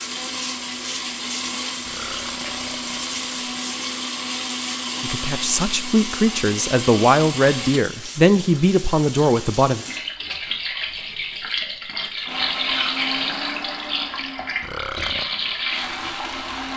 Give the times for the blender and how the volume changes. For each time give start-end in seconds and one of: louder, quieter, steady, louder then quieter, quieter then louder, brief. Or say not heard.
0.0-7.8 steady
12.2-16.7 quieter then louder.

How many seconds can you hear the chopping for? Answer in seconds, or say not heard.
not heard.